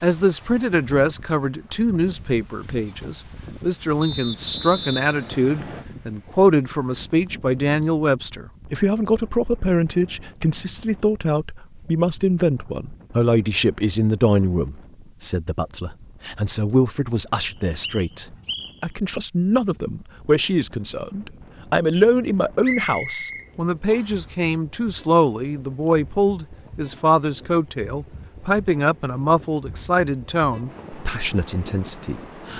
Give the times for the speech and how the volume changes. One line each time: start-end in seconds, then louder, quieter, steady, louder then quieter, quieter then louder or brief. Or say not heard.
0.0-32.5 steady.